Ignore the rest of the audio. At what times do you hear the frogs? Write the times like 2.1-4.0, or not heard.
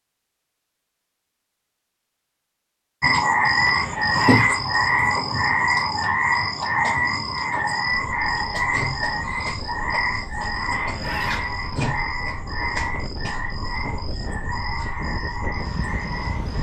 3.0-16.5.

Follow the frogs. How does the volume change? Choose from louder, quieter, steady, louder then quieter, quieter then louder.
quieter.